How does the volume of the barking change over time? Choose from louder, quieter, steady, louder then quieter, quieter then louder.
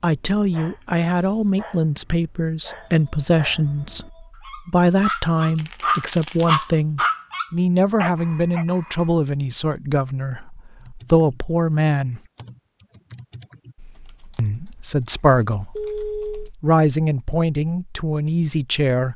louder.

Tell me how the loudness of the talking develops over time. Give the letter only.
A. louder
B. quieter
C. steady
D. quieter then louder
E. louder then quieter
C.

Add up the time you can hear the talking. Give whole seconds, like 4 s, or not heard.
17 s.